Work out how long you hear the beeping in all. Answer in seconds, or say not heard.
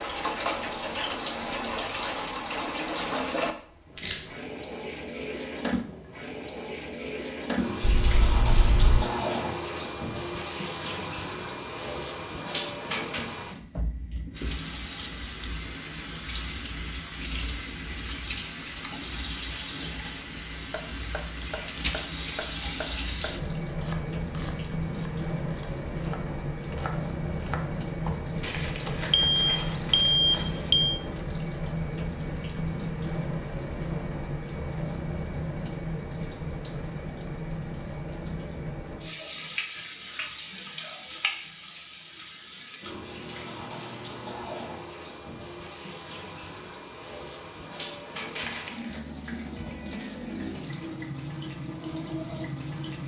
3 s.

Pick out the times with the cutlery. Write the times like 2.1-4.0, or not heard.
not heard.